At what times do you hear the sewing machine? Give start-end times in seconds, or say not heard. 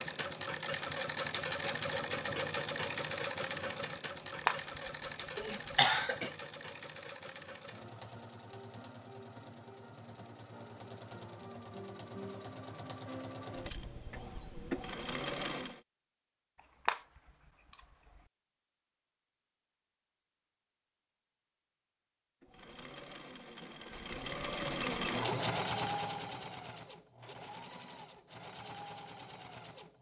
0.0-15.8, 22.4-29.9.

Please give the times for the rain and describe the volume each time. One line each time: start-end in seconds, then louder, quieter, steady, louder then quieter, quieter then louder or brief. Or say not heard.
not heard.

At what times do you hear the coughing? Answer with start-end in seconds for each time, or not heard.
5.3-6.3.